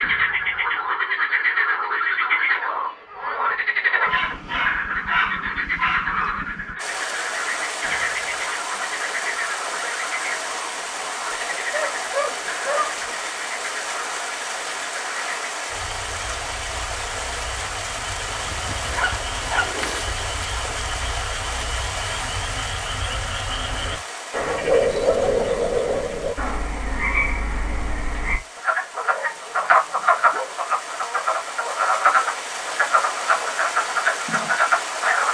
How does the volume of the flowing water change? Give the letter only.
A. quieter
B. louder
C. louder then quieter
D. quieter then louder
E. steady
D.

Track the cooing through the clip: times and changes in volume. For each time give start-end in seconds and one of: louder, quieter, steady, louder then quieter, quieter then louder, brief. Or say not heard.
not heard.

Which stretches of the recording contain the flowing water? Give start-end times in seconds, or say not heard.
6.8-35.2.